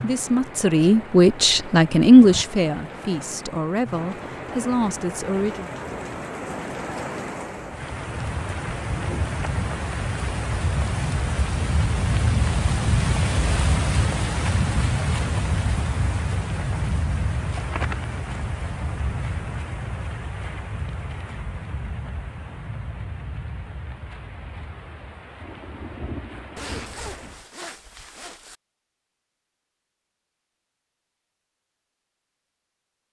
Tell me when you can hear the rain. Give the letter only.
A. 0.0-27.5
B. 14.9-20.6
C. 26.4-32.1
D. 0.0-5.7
A.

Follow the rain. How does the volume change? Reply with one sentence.
The volume of the rain goes up, then down.